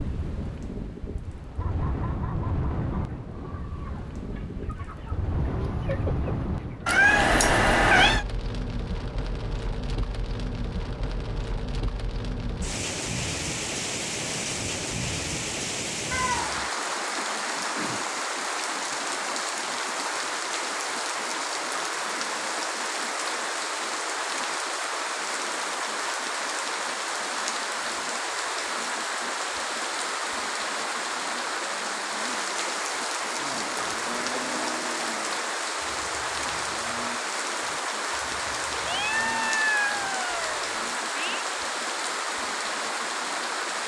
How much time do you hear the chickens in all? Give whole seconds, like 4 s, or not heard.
5 s.